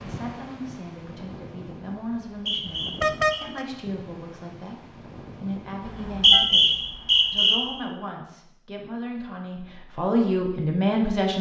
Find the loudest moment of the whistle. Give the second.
6 s.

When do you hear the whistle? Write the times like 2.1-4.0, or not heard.
2.2-3.4, 5.8-7.6.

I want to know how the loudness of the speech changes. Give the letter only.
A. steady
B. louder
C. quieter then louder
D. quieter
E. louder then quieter
B.